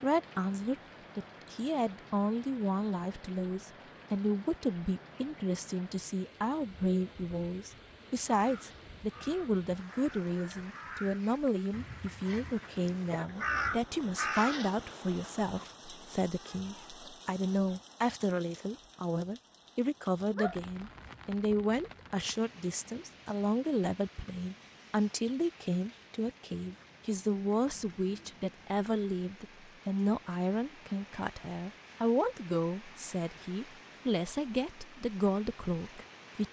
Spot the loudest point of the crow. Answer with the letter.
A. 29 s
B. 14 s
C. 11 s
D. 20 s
B.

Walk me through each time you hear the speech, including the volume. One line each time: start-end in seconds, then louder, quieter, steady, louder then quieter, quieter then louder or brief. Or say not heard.
0.0-36.4 steady.